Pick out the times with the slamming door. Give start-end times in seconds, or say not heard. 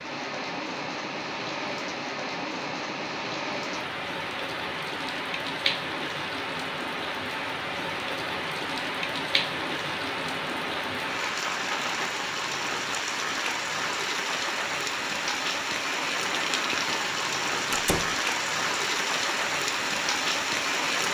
17.7-18.1.